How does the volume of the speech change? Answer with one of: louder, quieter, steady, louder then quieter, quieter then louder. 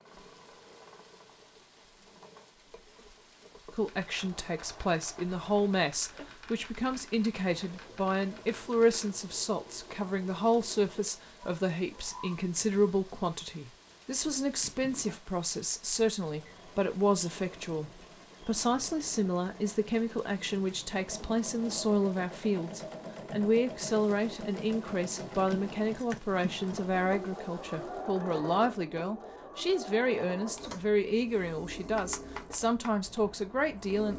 steady.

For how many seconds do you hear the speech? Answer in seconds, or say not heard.
30 s.